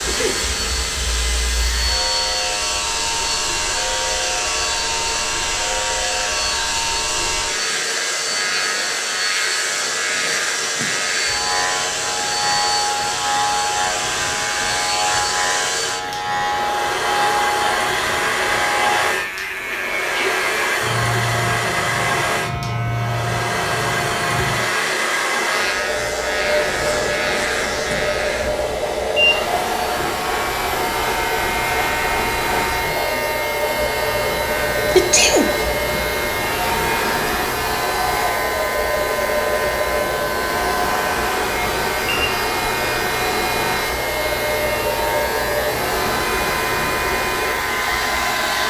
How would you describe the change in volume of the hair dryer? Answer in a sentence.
The loudness of the hair dryer stays about the same.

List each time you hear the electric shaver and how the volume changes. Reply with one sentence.
The electric shaver can be heard from 0.0 to 48.6 s, at a steady volume.